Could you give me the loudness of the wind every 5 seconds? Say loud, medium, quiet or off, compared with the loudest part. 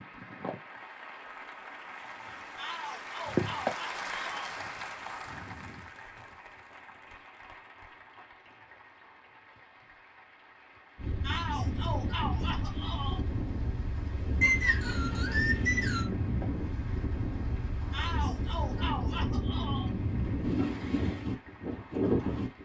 off, off, medium, loud, loud.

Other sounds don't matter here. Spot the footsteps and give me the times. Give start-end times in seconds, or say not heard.
not heard.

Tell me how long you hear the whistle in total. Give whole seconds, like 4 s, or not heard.
2 s.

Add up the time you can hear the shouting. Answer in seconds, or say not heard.
6 s.